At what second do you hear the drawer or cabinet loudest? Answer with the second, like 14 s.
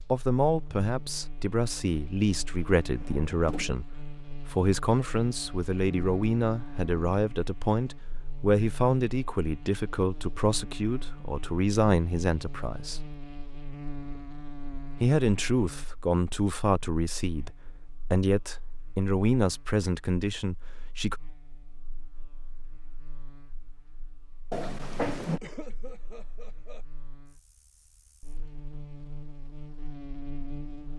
25 s.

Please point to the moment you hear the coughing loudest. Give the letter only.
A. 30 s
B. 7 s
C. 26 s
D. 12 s
C.